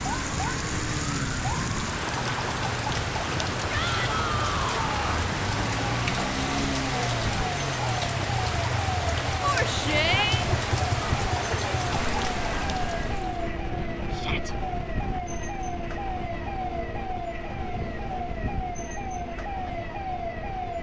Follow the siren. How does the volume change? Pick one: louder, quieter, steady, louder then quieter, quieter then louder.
steady.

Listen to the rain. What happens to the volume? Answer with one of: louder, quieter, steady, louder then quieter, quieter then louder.
steady.